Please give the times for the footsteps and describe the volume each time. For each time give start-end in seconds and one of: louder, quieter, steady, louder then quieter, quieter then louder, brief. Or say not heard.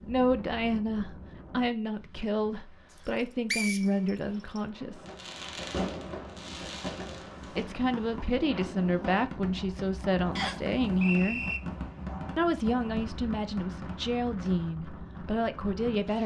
not heard.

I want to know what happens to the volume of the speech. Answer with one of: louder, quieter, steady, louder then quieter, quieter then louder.
steady.